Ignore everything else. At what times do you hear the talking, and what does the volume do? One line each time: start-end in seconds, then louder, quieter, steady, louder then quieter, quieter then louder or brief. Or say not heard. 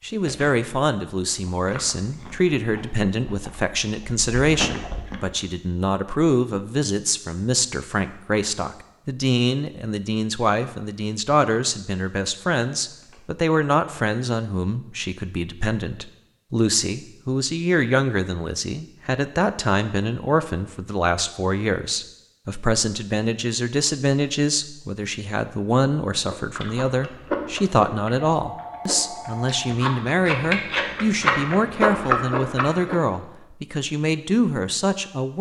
0.0-35.3 steady.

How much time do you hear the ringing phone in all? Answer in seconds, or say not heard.
2 s.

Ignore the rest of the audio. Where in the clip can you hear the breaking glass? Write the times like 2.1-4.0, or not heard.
not heard.